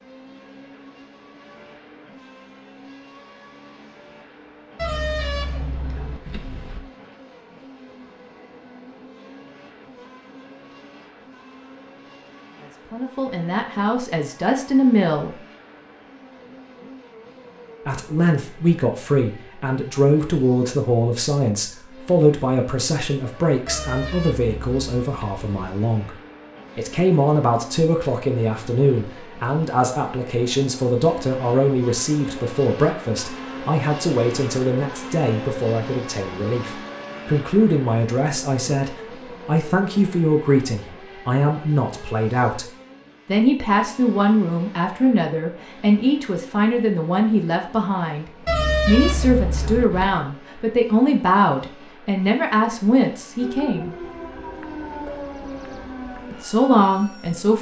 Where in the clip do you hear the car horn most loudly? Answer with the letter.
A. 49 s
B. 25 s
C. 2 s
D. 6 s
A.